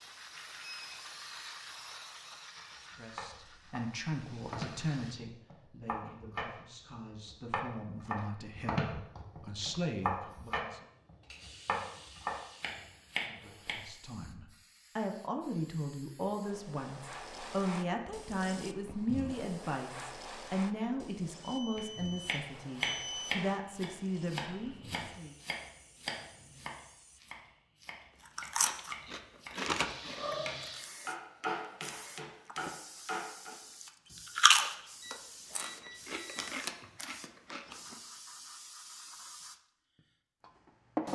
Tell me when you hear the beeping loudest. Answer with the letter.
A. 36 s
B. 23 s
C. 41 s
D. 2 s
B.